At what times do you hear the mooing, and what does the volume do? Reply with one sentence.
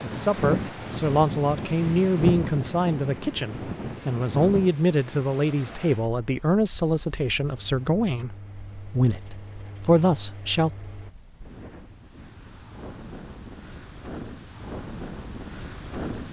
You can't hear the mooing here.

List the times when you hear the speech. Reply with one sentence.
You can hear the speech from 0.0 to 10.7 s.